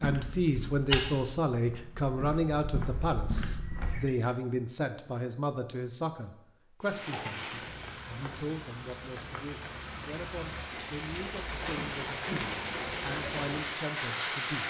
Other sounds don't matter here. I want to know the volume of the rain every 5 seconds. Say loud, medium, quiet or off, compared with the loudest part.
off, medium, loud.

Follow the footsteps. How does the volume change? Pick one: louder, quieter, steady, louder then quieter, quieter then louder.
quieter then louder.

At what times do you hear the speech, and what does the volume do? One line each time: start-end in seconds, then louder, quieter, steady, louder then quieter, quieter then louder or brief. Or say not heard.
0.0-14.6 quieter.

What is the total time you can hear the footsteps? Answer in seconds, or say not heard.
4 s.